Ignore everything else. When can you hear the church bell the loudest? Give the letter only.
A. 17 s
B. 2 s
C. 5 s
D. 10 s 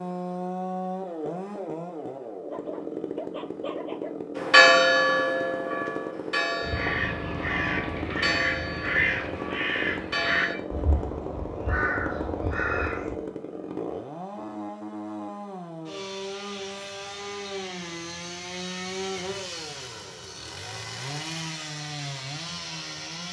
C.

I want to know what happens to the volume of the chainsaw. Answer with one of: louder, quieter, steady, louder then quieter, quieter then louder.
steady.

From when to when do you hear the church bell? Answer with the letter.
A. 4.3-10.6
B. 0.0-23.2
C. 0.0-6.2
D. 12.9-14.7
A.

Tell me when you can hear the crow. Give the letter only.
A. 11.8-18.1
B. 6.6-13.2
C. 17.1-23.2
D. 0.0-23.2
B.